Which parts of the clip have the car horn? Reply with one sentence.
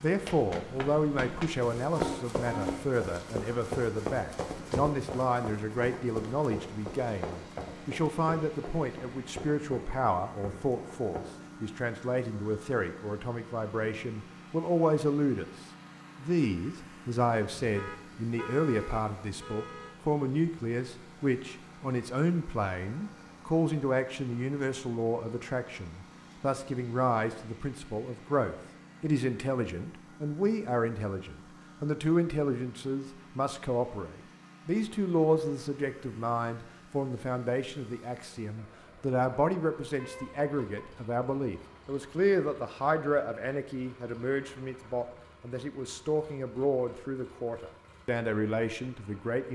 The car horn can be heard from 1.9 to 2.8 s, from 17.6 to 20.0 s and from 40.0 to 41.0 s.